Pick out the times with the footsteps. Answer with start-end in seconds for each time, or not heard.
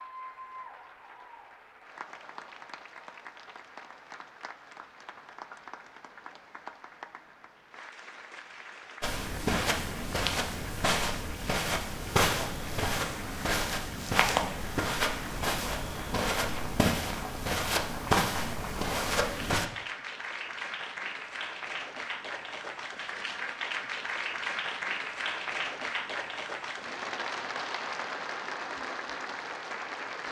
9.0-19.7.